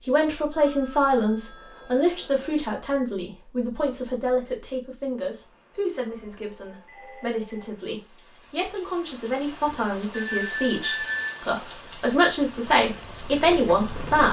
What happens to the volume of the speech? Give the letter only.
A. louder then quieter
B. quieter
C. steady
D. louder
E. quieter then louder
E.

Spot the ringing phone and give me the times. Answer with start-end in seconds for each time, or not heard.
0.5-2.5, 6.0-7.7, 10.1-11.4.